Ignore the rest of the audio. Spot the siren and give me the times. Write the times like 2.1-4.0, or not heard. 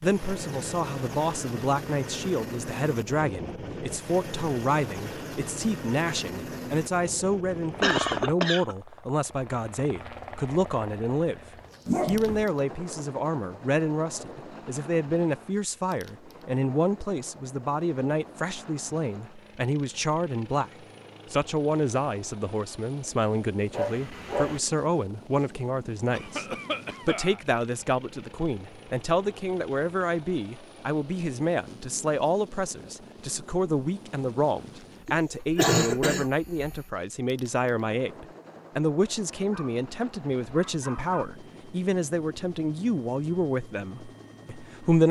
not heard.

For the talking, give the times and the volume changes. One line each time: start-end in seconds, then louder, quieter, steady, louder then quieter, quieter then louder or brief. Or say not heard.
0.0-11.4 steady
12.1-20.7 steady
21.3-45.0 steady.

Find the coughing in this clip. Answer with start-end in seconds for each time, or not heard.
7.8-8.8, 26.1-27.4, 35.0-36.3.